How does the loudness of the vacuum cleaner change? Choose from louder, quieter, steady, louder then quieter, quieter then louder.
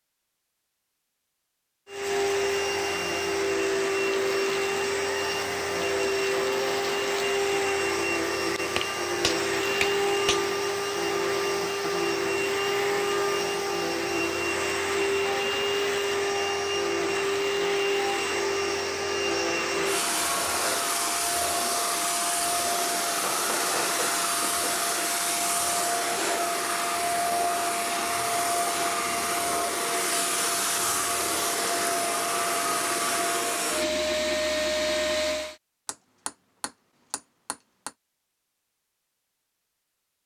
steady.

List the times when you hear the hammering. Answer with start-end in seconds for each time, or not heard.
8.8-10.5, 23.1-24.8, 35.9-37.9.